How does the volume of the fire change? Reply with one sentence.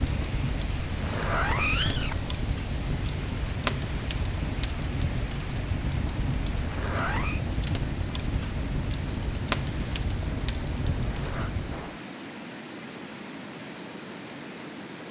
The loudness of the fire stays about the same.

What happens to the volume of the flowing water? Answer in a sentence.
The volume of the flowing water stays about the same.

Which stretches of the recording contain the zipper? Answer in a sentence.
You can hear the zipper from 0.8 to 2.4 s, from 6.5 to 7.5 s and from 11.1 to 11.6 s.